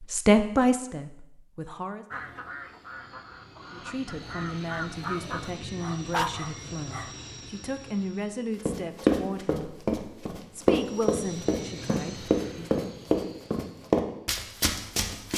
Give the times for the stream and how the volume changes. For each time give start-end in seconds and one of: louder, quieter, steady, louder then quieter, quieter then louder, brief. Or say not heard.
not heard.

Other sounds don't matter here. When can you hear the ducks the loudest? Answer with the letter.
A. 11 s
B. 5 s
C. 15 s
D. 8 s
B.